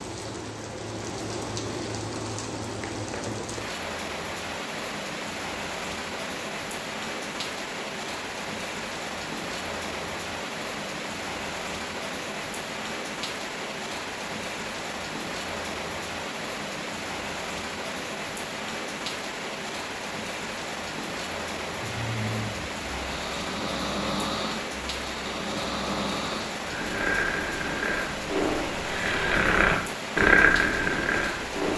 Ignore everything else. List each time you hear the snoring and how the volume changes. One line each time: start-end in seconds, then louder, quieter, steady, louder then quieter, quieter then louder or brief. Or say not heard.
21.8-31.7 louder.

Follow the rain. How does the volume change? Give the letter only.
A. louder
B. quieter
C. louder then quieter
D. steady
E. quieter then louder
D.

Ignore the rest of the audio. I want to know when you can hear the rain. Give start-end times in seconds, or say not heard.
0.0-31.7.